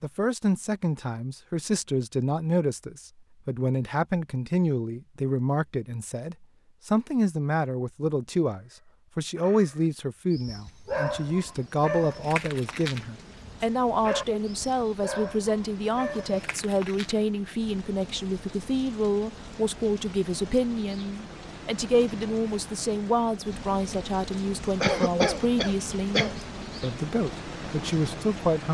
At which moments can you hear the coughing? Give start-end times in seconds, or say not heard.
24.8-26.4.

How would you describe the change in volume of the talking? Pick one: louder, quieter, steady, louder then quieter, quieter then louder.
steady.